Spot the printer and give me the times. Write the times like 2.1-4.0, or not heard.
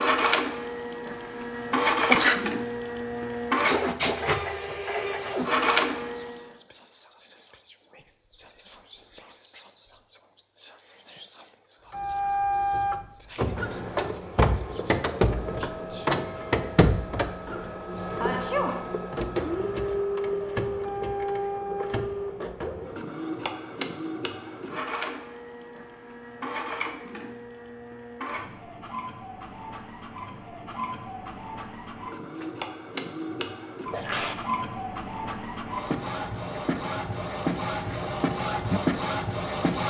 0.0-6.5, 11.9-39.8.